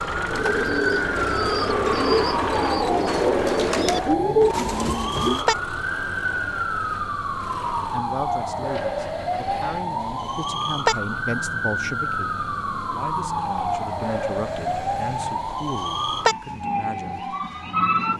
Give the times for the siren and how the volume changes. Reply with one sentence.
The siren can be heard from 0.0 to 18.1 s, at a steady volume.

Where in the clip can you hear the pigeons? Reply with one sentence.
The pigeons can be heard from 0.2 to 5.5 s.